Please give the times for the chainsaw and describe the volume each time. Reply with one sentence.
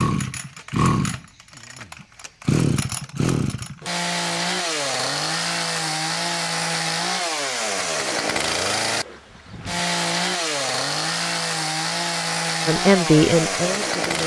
You can hear the chainsaw from 0.0 to 14.2 s, at a steady volume.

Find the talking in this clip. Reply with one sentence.
You can hear the talking from 12.7 to 14.2 s.